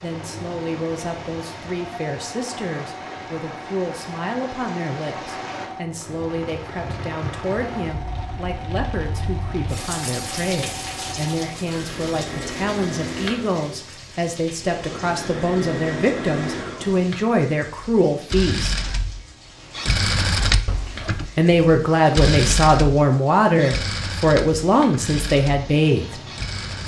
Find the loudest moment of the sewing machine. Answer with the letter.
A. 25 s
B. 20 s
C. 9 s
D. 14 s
B.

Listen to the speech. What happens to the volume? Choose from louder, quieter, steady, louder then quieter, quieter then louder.
louder.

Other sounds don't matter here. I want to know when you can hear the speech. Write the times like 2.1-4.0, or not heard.
0.0-18.8, 21.4-26.2.